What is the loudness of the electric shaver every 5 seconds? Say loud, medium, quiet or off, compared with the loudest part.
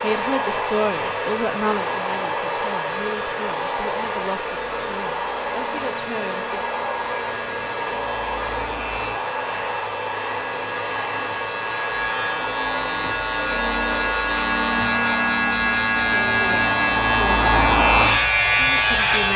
quiet, quiet, medium, loud.